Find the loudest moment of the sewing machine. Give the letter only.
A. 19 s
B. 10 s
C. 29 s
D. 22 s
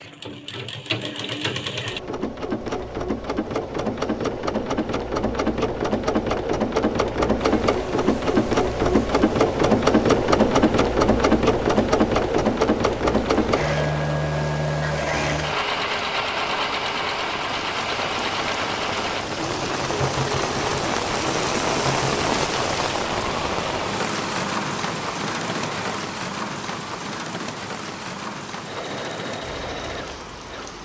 B.